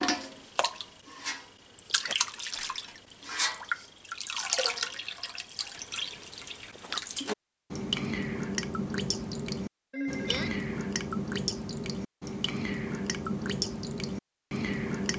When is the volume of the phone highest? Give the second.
10 s.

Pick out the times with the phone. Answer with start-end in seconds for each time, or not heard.
2.5-3.0, 9.9-10.7.